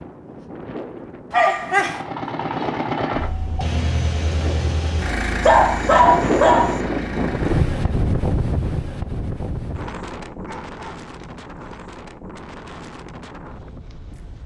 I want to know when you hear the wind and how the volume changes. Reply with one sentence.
You can hear the wind from 0.0 to 14.4 s, getting louder then quieter.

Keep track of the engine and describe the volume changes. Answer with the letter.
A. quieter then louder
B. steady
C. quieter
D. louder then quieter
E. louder
C.